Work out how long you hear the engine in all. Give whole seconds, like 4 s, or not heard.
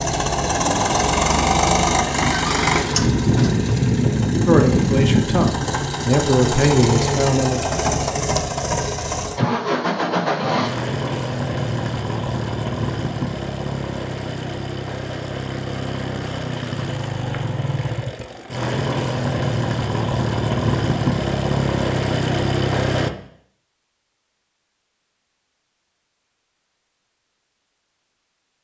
23 s.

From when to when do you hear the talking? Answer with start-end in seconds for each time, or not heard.
4.5-7.7.